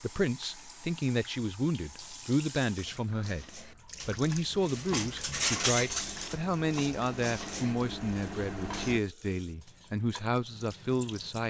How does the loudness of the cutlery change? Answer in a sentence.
The loudness of the cutlery goes up, then down.